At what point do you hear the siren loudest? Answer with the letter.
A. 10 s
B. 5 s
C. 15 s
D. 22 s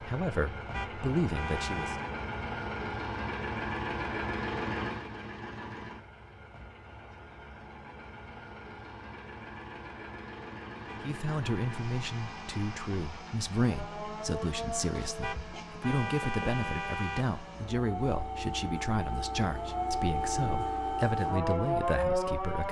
D.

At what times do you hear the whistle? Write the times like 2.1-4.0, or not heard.
not heard.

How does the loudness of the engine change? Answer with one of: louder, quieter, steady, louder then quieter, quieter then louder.
quieter.